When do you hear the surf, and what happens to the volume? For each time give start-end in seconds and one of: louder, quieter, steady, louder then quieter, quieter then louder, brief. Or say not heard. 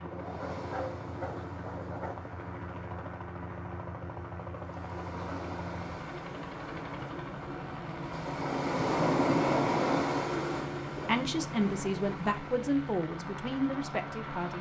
0.1-14.3 louder then quieter.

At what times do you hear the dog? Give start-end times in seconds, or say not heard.
0.1-2.1.